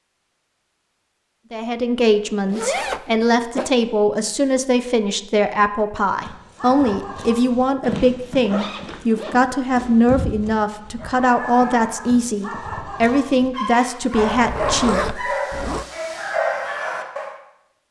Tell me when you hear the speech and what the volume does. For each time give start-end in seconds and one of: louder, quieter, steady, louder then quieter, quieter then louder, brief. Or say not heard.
1.5-15.3 steady.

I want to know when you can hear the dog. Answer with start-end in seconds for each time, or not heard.
6.0-17.4.